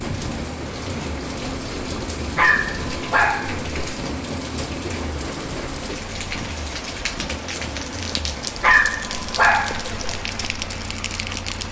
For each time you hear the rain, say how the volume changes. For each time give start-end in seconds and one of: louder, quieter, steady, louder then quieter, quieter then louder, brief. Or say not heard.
0.0-11.6 steady.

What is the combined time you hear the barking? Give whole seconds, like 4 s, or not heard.
3 s.